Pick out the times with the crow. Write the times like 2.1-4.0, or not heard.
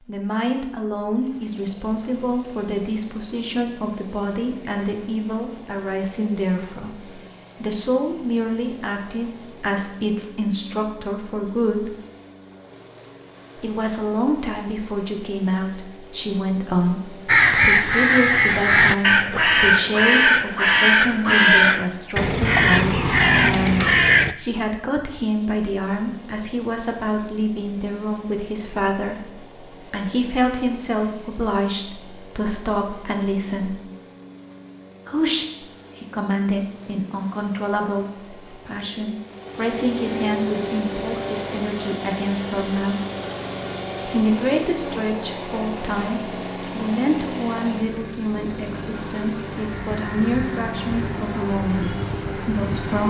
17.2-24.4, 49.6-53.0.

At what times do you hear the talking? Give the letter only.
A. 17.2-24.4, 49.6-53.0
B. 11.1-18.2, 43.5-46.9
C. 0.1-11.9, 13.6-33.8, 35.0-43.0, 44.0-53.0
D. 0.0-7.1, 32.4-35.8
C.